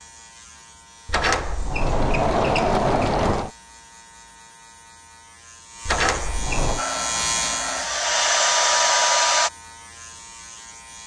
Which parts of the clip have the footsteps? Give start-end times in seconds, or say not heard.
not heard.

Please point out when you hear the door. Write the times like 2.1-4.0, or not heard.
1.1-3.5, 5.8-6.8.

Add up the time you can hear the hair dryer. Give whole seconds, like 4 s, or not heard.
3 s.